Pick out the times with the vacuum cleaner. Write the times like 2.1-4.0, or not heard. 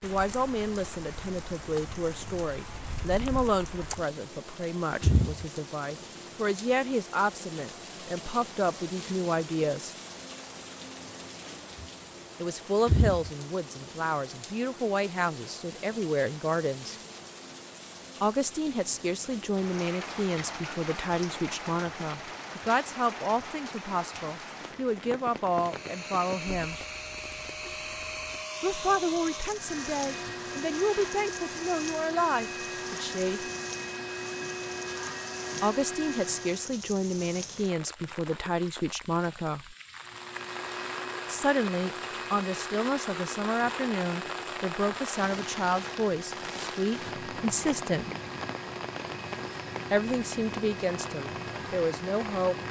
25.6-36.8, 40.0-52.6.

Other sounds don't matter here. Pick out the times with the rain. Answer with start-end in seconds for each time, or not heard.
0.0-52.6.